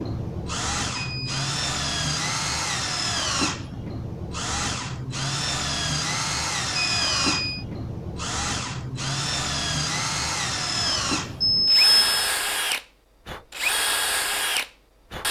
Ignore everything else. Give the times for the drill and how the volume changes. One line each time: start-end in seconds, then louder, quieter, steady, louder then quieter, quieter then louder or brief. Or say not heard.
0.0-15.2 steady.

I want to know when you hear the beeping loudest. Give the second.
12 s.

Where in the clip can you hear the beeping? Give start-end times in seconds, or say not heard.
0.9-1.4, 6.8-7.7, 10.8-12.3.